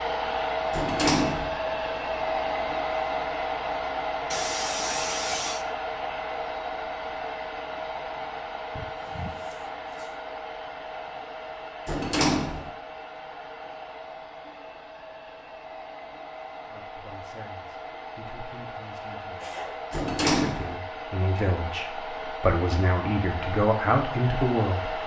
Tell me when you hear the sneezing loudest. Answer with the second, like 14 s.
5 s.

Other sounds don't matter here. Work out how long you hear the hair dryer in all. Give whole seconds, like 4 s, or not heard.
25 s.